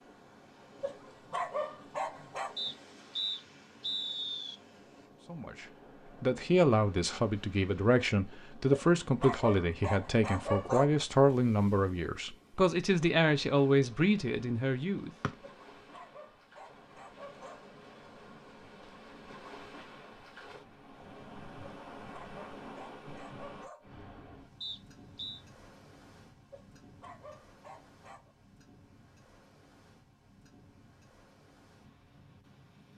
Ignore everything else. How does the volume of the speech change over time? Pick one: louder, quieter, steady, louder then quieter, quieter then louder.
steady.